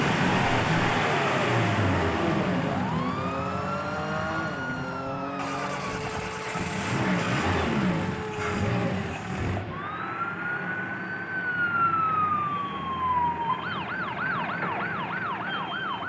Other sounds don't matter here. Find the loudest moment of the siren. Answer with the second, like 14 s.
12 s.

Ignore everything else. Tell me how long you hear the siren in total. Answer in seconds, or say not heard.
16 s.